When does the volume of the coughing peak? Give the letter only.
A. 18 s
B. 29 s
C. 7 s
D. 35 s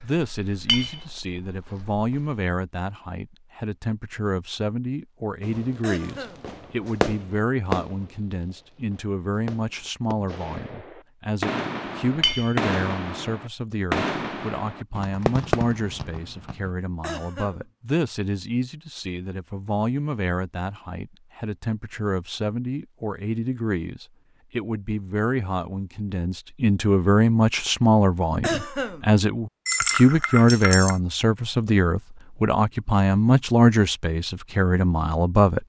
B.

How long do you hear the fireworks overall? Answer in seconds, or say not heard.
11 s.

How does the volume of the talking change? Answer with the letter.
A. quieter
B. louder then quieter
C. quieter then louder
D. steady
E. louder
E.